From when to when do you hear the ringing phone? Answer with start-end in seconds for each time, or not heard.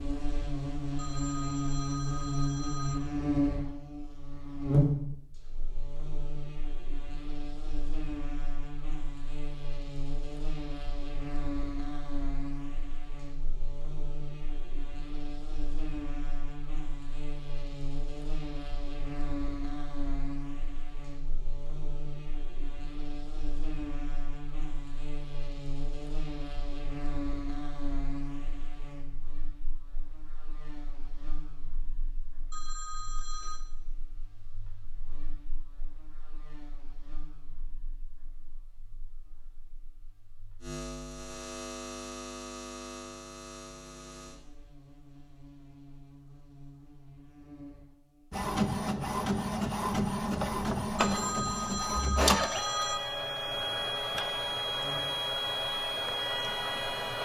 0.9-3.0, 32.5-33.6, 51.0-53.0.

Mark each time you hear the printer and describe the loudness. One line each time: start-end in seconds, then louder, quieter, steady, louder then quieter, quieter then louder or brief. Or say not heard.
48.3-57.1 steady.